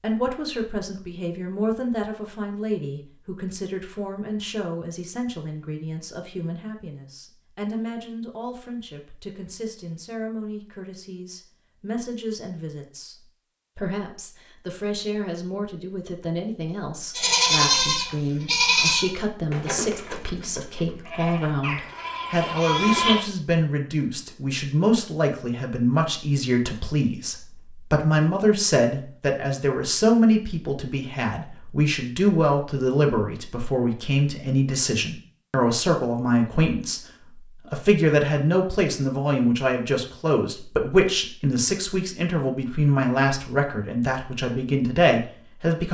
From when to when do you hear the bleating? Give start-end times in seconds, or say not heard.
17.1-23.2.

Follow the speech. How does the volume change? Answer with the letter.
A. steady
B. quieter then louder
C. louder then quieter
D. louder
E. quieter
D.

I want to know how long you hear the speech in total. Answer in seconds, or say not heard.
46 s.